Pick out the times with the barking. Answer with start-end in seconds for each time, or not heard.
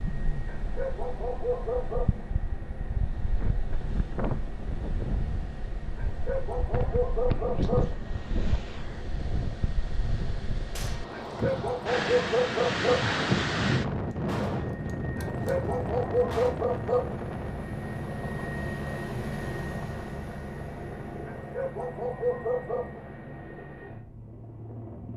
0.5-2.2, 6.0-8.0, 11.1-13.1, 15.2-17.1, 21.2-23.0.